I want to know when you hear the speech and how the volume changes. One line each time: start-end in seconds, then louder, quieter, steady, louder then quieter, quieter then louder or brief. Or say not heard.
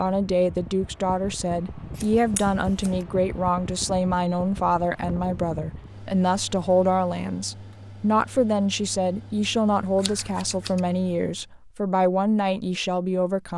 0.0-13.5 steady.